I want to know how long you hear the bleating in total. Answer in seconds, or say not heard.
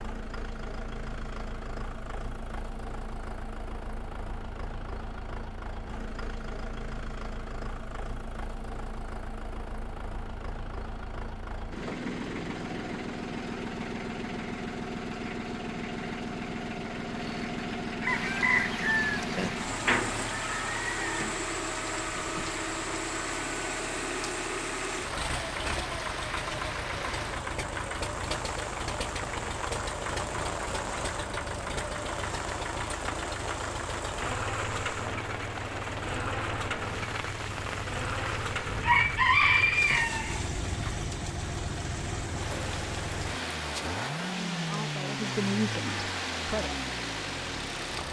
not heard.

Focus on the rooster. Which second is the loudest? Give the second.
39 s.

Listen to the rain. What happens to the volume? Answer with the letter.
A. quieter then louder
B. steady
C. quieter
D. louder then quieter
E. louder
B.